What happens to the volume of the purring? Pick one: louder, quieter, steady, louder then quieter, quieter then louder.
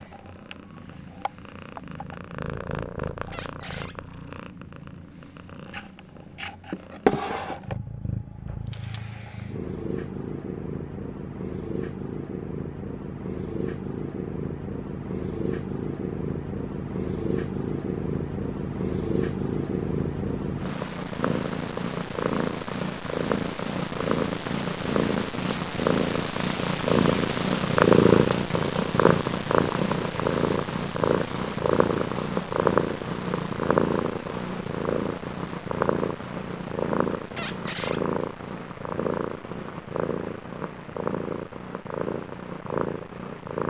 louder then quieter.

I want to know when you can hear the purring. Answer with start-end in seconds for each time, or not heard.
0.0-43.6.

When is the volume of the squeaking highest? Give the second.
38 s.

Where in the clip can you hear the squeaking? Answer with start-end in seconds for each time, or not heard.
3.3-4.0, 37.4-38.0.